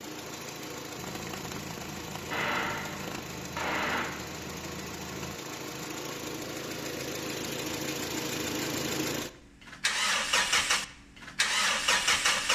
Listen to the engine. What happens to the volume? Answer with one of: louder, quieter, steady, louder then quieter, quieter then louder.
louder.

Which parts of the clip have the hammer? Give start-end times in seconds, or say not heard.
2.3-4.1.